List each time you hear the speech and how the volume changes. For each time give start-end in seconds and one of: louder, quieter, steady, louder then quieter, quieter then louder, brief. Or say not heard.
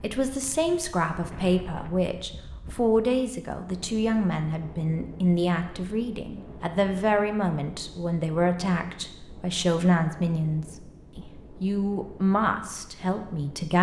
0.0-13.7 steady.